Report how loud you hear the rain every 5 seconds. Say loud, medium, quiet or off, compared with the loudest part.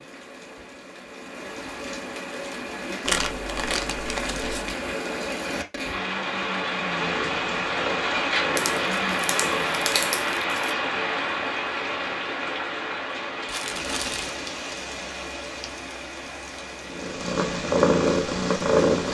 medium, loud, loud, medium.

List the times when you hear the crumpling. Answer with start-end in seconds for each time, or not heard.
3.0-4.8, 8.6-10.8, 13.4-14.3.